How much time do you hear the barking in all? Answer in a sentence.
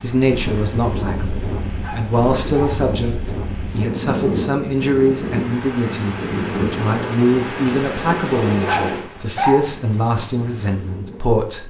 The barking can be heard for 2 seconds in total.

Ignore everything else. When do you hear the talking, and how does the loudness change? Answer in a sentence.
You can hear the talking from 0.0 to 11.6 s, at a steady volume.